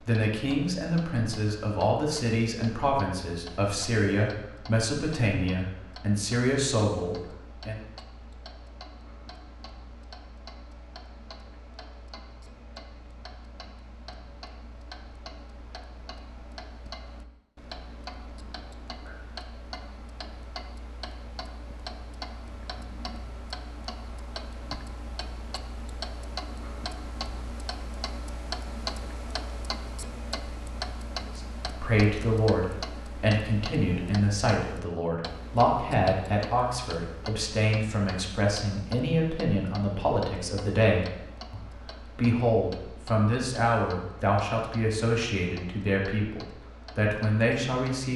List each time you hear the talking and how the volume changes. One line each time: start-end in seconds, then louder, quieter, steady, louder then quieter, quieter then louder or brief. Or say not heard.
0.0-7.8 steady
31.2-48.1 steady.